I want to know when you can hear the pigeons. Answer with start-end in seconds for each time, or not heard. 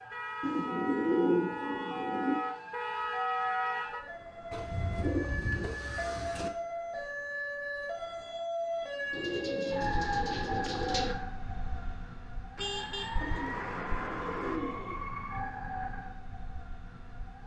0.4-2.4, 4.5-6.5, 9.1-11.2, 13.2-15.1.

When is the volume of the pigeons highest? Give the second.
1 s.